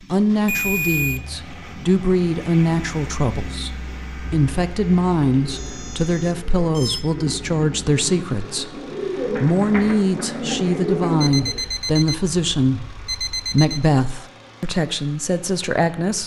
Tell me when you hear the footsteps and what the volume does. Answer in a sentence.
The footsteps can't be heard in this clip.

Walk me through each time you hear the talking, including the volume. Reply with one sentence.
You can hear the talking from 0.1 to 16.2 s, at a steady volume.